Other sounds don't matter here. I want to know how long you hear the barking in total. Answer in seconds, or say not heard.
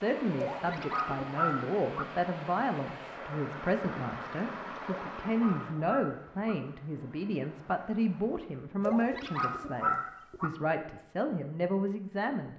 5 s.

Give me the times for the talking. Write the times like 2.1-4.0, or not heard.
0.0-12.5.